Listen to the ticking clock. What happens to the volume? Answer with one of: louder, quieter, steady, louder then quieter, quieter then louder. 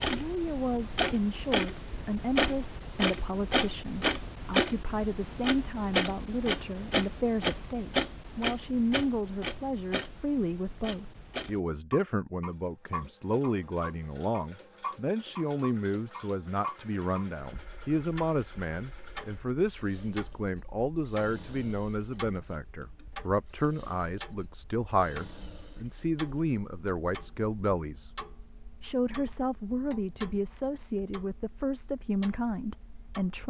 quieter.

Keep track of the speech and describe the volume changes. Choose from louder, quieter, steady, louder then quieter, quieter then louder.
steady.